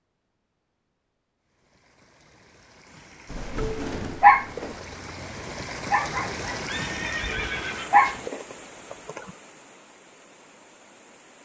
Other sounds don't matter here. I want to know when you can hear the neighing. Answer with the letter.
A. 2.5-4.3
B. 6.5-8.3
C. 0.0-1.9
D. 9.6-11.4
B.